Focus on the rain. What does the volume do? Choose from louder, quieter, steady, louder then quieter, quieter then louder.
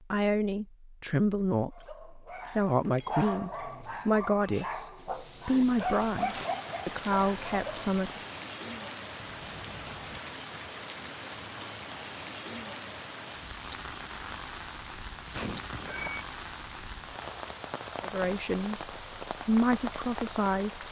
steady.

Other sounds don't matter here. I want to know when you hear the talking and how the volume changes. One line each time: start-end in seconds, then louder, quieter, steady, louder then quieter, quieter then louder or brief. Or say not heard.
0.1-8.2 steady
18.0-20.8 brief.